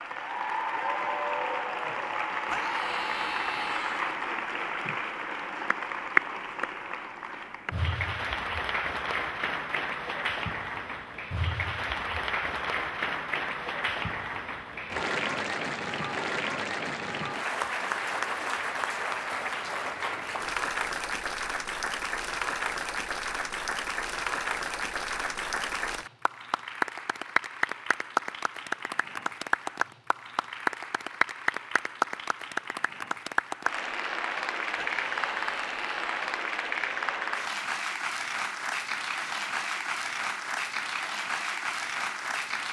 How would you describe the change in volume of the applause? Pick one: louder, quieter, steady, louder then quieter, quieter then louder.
steady.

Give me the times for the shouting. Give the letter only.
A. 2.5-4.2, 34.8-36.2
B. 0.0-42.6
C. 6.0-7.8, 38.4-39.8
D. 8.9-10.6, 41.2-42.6
A.